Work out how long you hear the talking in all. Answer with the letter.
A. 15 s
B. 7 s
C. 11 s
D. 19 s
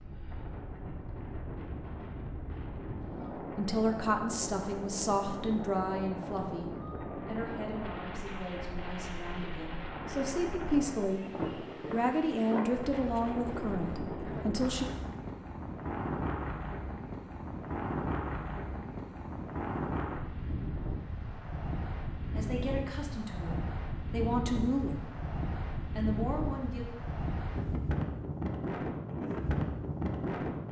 A.